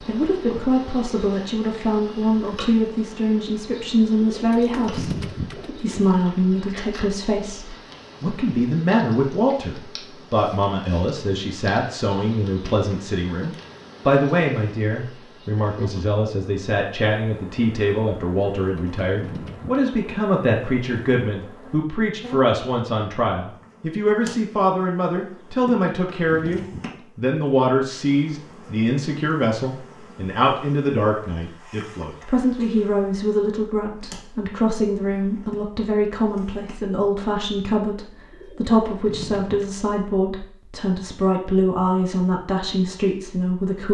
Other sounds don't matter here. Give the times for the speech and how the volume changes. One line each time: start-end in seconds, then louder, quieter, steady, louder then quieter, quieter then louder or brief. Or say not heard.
0.0-43.8 steady.